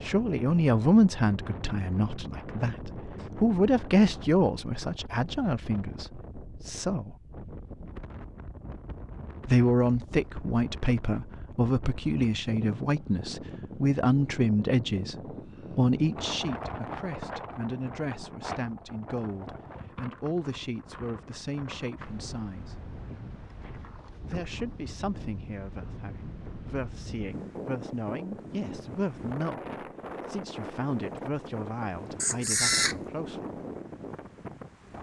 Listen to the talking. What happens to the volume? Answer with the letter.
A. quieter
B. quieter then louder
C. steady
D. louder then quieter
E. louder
A.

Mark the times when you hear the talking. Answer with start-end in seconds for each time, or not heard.
0.0-7.2, 9.4-15.2, 15.8-22.8, 24.2-33.6.